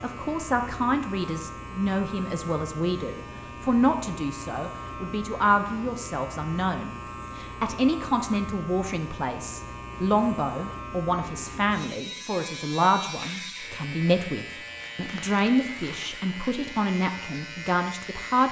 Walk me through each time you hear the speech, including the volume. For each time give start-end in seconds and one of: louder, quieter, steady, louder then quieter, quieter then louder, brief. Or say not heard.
0.0-18.4 steady.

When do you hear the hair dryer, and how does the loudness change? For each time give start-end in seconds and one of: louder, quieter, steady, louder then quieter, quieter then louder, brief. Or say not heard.
not heard.